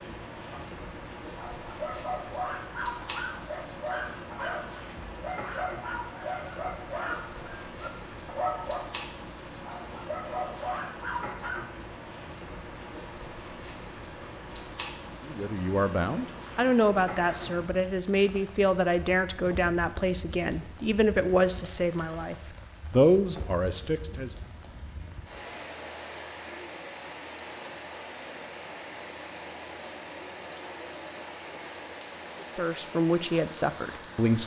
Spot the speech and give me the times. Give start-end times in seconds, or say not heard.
15.2-24.3, 32.5-34.4.